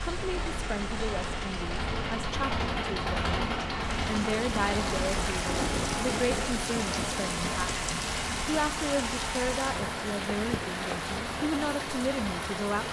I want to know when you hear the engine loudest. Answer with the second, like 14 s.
3 s.